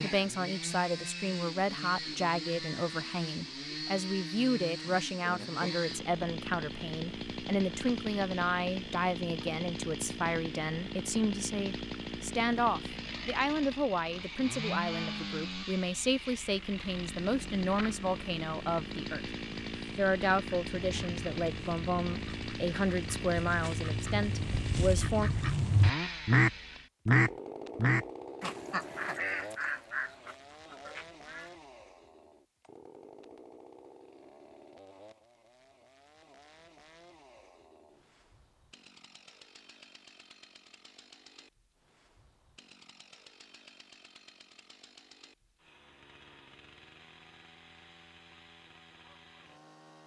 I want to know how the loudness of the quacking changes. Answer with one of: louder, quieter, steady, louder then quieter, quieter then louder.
louder then quieter.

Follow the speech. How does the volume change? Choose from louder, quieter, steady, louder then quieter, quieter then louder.
steady.